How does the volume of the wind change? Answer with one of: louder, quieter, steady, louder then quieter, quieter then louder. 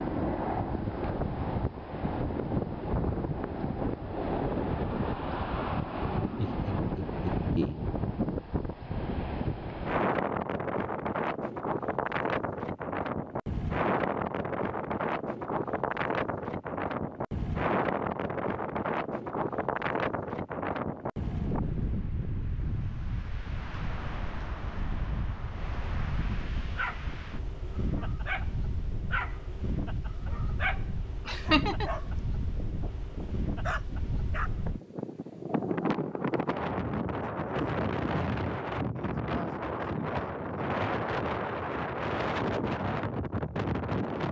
quieter then louder.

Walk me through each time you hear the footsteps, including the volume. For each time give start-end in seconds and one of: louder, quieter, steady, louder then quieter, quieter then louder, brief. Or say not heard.
not heard.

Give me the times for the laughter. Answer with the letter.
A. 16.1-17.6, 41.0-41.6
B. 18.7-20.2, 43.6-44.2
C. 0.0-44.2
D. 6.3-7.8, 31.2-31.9
D.